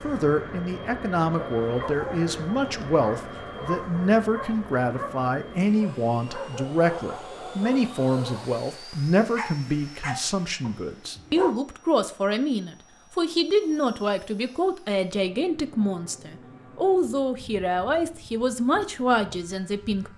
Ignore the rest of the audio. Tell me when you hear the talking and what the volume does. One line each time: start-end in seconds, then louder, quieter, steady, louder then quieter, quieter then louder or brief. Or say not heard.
0.0-20.1 steady.